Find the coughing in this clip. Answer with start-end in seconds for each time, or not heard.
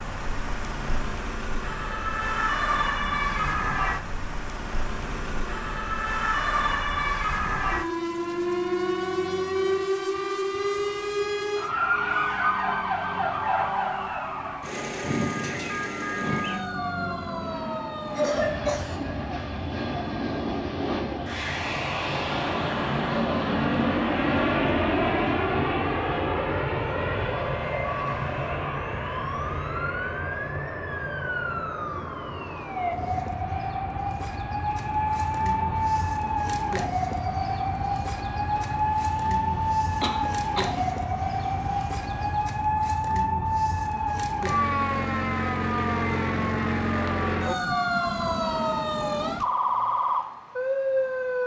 18.1-19.0, 40.0-40.9.